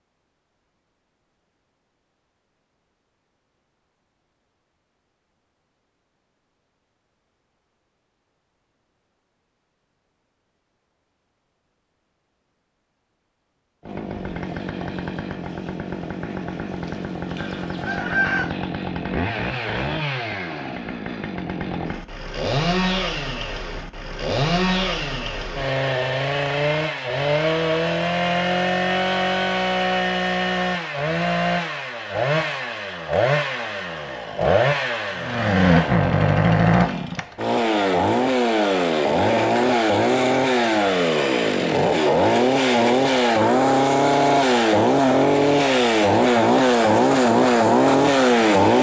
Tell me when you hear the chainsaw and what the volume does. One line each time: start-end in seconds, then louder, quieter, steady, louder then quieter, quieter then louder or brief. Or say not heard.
13.8-48.7 louder.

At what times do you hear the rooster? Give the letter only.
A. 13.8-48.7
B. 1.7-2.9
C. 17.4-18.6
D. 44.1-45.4
C.